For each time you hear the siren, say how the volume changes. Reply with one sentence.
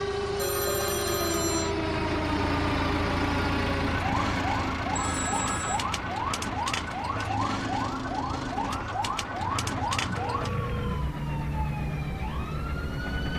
You can hear the siren from 0.0 to 13.3 s, at a steady volume.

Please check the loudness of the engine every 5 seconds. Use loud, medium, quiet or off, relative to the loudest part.
loud, medium, medium.